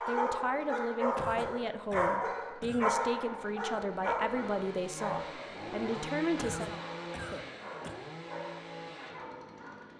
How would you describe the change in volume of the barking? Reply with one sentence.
The loudness of the barking goes down.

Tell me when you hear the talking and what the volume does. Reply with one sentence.
You can hear the talking from 0.1 to 6.8 s, at a steady volume.